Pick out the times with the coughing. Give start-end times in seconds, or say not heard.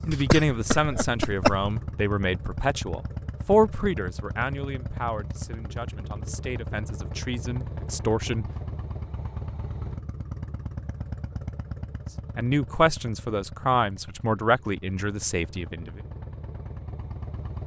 0.1-1.7.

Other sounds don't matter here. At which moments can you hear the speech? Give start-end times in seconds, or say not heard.
0.1-8.4, 12.3-16.0.